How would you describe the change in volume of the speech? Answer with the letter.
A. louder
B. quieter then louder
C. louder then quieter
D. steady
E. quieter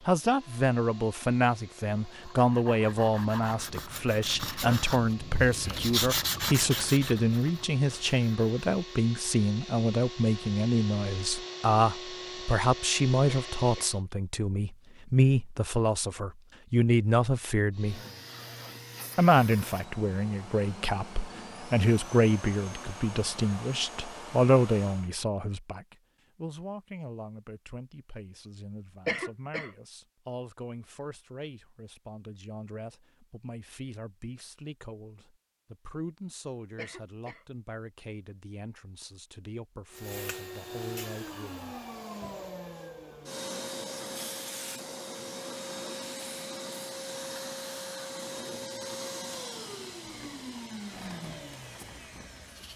E.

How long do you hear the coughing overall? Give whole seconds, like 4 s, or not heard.
2 s.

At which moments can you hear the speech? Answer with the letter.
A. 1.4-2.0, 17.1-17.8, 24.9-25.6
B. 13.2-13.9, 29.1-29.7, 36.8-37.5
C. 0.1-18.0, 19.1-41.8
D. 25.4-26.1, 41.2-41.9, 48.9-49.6
C.